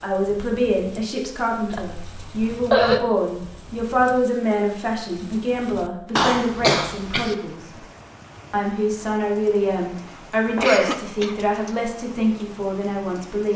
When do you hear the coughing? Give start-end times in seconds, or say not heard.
1.7-3.0, 6.2-7.3, 10.1-11.3.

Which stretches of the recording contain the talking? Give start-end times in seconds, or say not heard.
0.0-7.6, 8.5-13.5.